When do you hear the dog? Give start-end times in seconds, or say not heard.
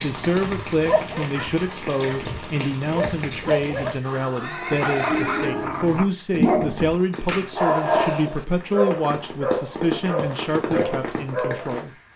0.8-11.8.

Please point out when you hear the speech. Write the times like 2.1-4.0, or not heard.
0.0-11.9.